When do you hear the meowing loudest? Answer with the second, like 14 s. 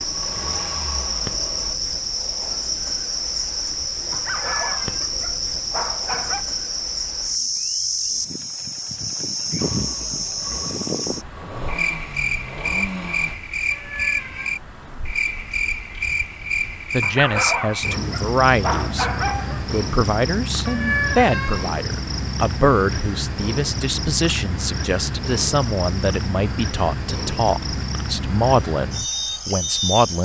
21 s.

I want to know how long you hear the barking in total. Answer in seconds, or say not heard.
5 s.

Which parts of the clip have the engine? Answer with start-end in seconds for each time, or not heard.
0.0-1.8, 9.6-13.3.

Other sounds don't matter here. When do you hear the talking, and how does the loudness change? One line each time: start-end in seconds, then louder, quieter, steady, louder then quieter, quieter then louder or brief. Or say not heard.
16.9-19.1 brief
19.7-30.2 steady.